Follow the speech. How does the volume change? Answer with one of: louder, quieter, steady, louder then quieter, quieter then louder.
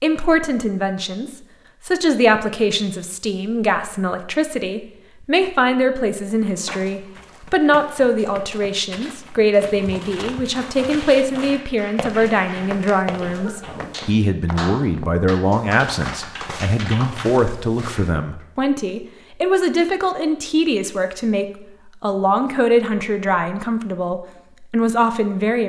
steady.